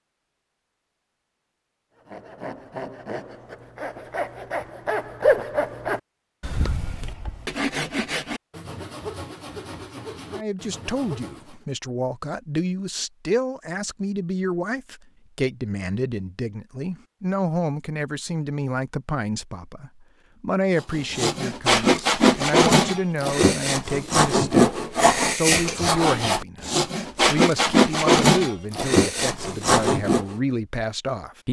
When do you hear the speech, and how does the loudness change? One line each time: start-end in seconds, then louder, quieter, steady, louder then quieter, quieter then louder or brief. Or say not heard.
10.3-31.4 steady.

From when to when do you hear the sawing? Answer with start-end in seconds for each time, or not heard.
2.0-11.7, 20.8-30.4.